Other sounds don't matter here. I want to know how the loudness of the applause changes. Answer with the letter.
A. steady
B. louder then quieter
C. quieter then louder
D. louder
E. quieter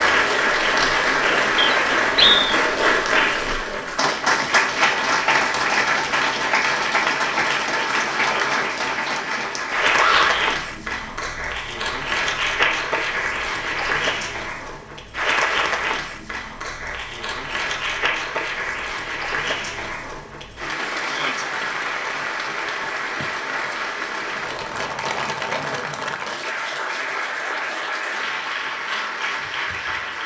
E.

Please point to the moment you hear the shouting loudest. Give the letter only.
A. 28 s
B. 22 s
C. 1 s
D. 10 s
D.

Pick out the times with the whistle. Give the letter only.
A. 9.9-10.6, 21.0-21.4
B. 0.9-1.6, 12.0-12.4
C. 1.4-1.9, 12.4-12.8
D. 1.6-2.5
D.